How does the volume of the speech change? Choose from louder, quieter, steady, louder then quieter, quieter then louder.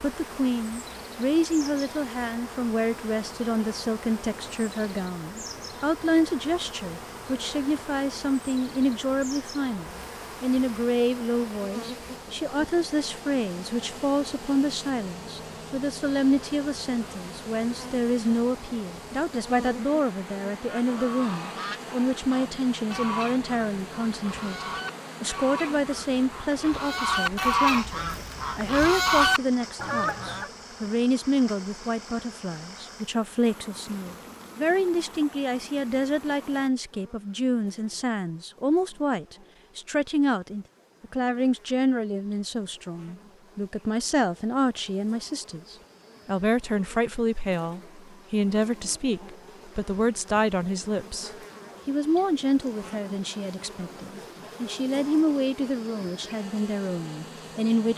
steady.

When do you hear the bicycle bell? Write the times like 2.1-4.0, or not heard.
not heard.